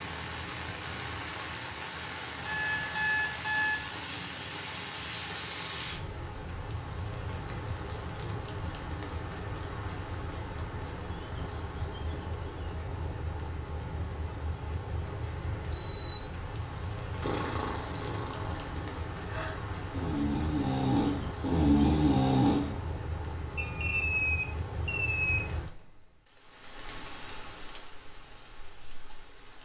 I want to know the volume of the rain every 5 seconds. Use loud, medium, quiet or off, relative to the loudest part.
loud, loud, loud, loud, loud, medium.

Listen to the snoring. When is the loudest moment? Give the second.
22 s.